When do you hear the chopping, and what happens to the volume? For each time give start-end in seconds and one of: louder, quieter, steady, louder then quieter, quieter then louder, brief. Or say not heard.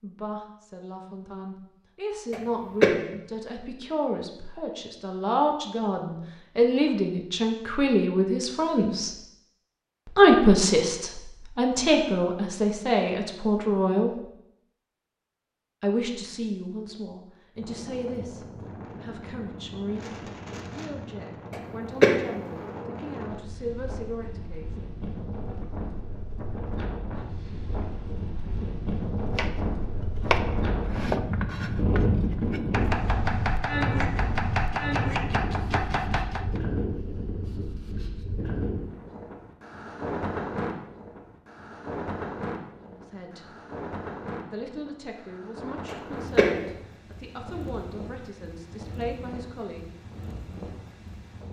29.2-36.6 steady.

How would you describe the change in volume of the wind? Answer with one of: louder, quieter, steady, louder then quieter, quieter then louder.
louder then quieter.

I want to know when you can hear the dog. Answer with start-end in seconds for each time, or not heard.
not heard.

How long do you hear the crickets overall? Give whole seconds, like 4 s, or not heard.
not heard.